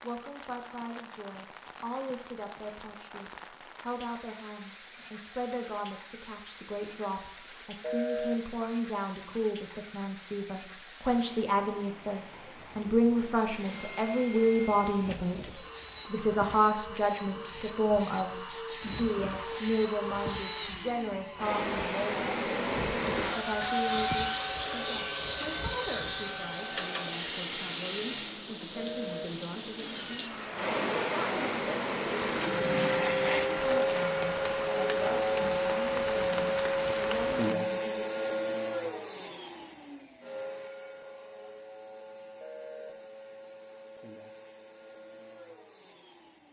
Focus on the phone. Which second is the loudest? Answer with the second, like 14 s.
8 s.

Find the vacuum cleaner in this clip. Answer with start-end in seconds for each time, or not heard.
13.4-28.4, 29.7-46.4.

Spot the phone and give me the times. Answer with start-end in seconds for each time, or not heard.
7.8-8.3, 28.8-29.2, 42.4-42.9.